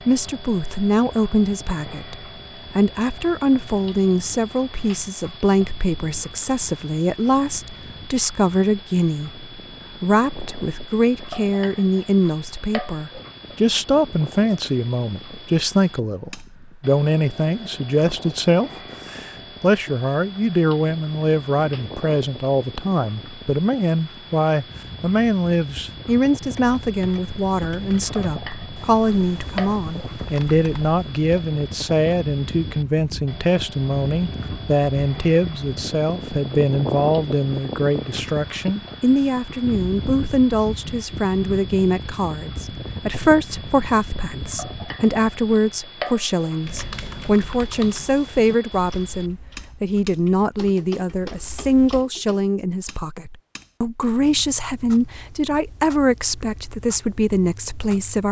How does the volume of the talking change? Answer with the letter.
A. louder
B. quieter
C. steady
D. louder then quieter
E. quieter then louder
C.